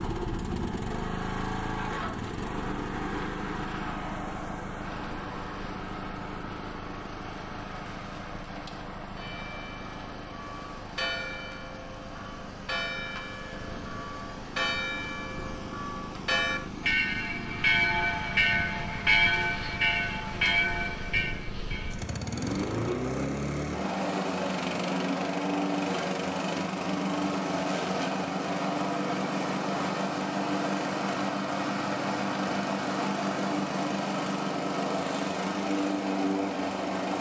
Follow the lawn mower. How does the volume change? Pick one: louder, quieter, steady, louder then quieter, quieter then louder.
quieter then louder.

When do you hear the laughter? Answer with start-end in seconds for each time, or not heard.
not heard.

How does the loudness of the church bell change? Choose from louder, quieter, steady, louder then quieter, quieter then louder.
louder.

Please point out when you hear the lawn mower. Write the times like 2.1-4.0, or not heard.
0.0-37.1.